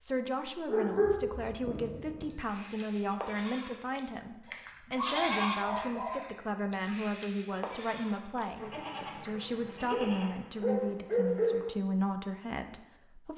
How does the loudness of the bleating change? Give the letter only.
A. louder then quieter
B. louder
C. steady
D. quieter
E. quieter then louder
A.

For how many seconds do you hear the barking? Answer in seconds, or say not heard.
6 s.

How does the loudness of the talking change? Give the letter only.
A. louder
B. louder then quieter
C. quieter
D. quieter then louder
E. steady
E.